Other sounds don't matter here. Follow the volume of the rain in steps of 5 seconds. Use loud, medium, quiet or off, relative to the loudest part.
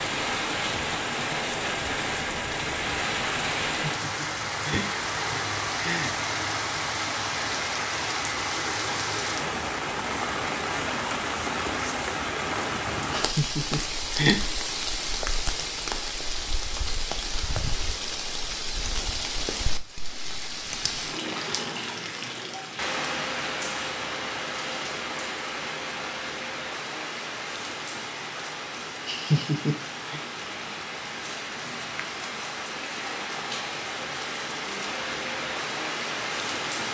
loud, loud, loud, loud, loud, medium, medium, loud.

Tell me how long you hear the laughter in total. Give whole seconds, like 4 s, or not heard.
5 s.